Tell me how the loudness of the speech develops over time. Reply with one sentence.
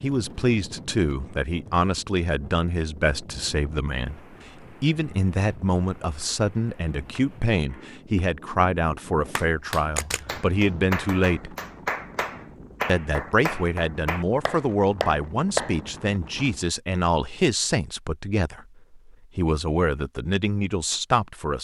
The loudness of the speech stays about the same.